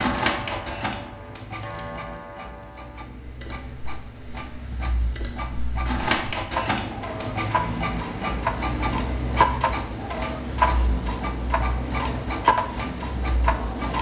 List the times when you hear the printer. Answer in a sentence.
You can hear the printer from 0.0 to 13.9 s.